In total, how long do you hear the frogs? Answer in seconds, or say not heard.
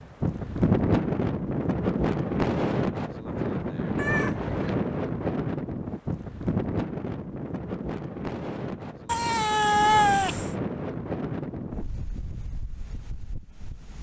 not heard.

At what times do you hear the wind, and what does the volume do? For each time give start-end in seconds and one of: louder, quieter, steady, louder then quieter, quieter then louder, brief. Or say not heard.
0.0-13.9 quieter.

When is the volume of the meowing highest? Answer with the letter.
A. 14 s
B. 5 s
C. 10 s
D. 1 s
C.